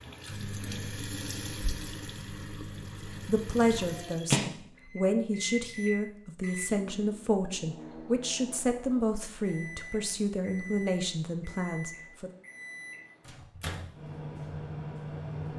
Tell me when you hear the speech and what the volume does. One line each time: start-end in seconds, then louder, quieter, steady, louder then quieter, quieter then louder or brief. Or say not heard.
3.2-12.3 steady.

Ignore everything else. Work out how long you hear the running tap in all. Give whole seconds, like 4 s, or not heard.
4 s.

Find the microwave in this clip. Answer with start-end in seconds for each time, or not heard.
0.1-15.5.